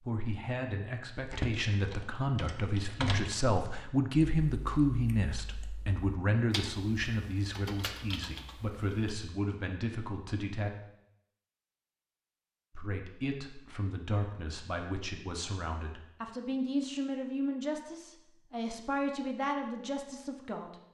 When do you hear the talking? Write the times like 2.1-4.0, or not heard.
0.0-10.7, 12.8-20.8.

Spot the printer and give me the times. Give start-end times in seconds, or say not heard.
not heard.